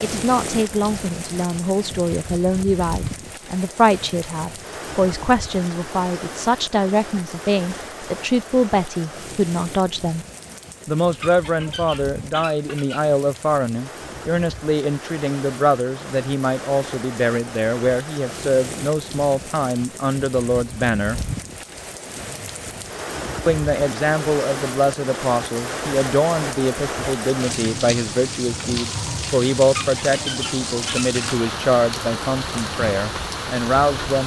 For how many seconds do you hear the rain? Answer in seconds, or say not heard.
34 s.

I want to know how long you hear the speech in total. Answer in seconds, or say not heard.
31 s.